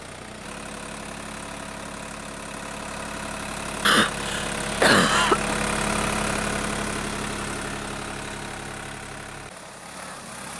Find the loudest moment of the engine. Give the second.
6 s.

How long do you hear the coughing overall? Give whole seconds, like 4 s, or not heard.
2 s.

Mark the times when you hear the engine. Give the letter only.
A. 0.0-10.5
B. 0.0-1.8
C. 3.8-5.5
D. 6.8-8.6
A.